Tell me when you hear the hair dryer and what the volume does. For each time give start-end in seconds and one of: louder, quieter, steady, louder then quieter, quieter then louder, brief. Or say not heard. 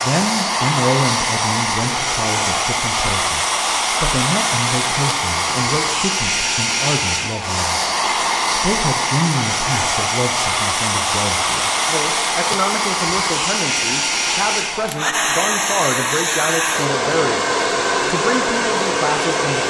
0.0-19.6 steady.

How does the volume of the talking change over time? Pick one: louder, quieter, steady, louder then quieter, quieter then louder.
steady.